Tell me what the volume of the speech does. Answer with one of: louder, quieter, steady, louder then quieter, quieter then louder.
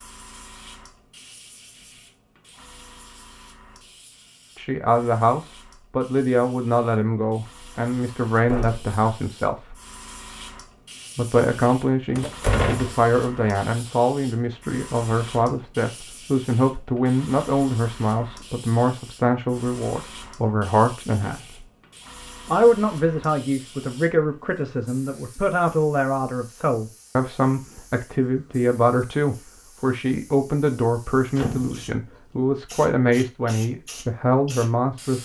steady.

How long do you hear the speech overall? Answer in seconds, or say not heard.
28 s.